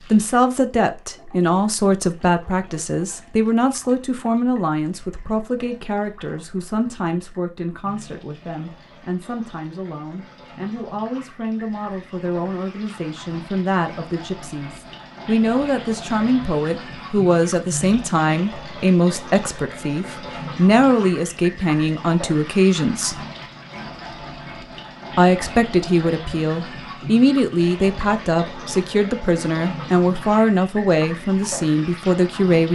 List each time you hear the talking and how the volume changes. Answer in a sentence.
You can hear the talking from 0.1 to 23.2 s, getting quieter then louder; and from 25.1 to 32.6 s, at a steady volume.